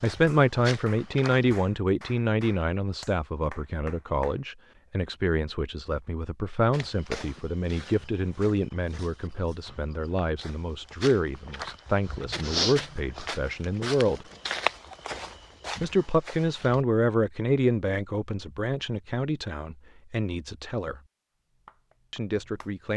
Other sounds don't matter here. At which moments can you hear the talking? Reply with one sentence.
You can hear the talking from 0.0 to 14.2 s, from 15.8 to 21.0 s and from 22.1 to 22.9 s.